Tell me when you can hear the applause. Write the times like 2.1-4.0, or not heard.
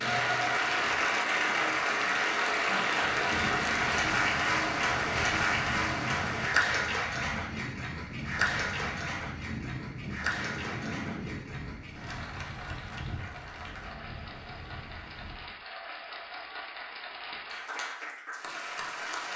0.0-19.3.